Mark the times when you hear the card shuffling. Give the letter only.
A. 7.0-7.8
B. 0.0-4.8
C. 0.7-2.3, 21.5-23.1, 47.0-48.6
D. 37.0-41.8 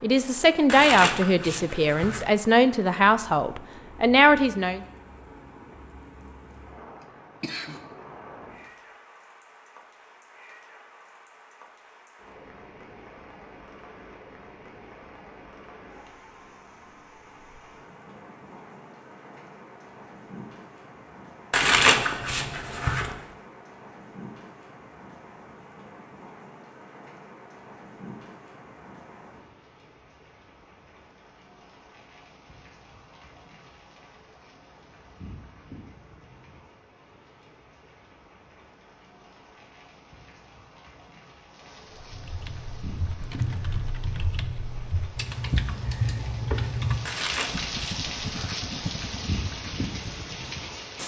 C.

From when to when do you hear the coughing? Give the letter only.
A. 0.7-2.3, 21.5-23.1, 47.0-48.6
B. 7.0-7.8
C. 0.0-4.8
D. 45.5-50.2
B.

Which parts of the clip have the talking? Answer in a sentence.
The talking can be heard from 0.0 to 4.8 s.